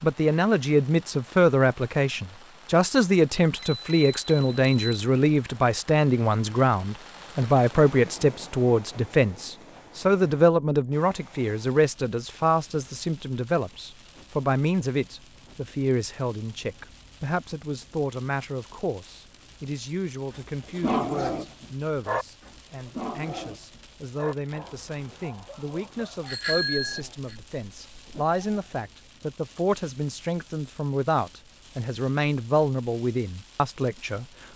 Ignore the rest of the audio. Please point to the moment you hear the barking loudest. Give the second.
21 s.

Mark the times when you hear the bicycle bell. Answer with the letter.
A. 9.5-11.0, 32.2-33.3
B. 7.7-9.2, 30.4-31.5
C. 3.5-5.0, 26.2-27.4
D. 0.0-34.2
C.